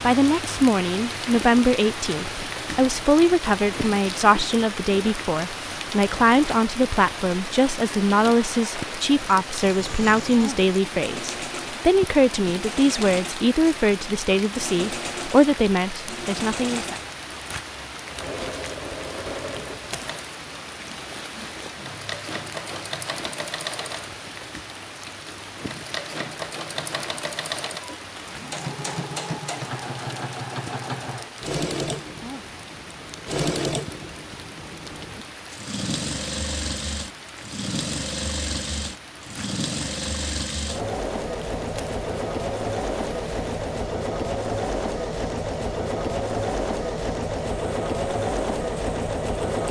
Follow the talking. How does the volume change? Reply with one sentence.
The loudness of the talking stays about the same.